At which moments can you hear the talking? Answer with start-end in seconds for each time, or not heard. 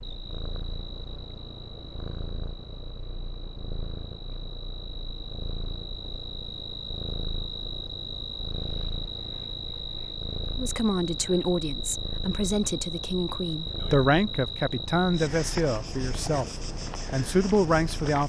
10.6-18.2.